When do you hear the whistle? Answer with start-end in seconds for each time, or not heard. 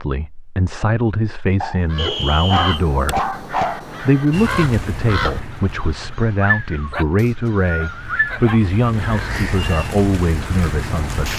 1.9-2.8, 7.2-8.2.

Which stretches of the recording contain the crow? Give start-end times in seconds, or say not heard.
1.9-9.7.